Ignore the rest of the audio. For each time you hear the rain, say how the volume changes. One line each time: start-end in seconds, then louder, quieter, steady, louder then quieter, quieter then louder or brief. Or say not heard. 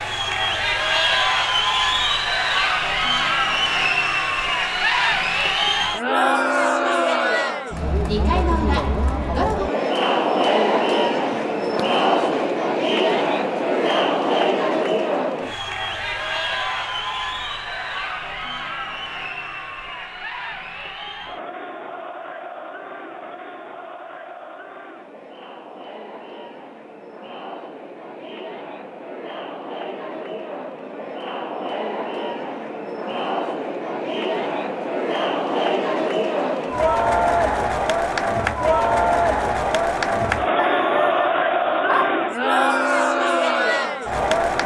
not heard.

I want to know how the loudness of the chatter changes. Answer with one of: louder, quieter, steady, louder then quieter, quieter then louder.
quieter then louder.